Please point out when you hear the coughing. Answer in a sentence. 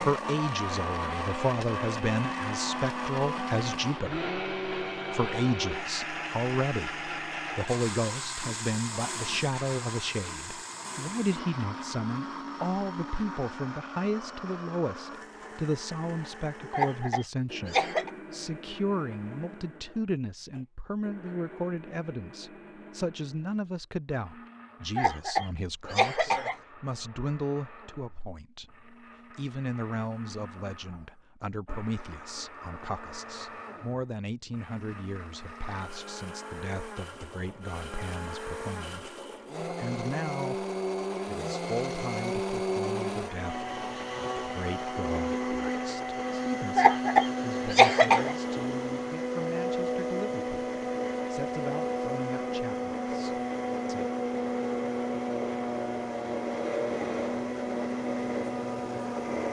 You can hear the coughing from 16.7 to 18.1 s, from 24.9 to 26.6 s and from 46.8 to 48.4 s.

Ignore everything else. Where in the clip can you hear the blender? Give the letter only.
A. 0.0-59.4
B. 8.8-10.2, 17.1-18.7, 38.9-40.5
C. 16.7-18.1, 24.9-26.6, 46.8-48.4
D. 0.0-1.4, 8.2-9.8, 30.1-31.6
A.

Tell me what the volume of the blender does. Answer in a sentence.
The volume of the blender goes down, then up.